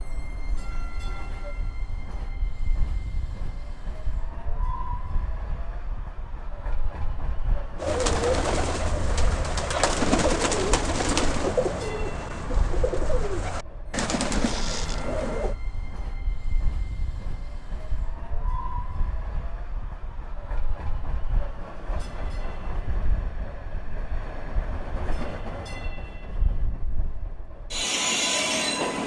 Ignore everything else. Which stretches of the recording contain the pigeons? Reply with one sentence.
You can hear the pigeons from 7.8 to 15.6 s.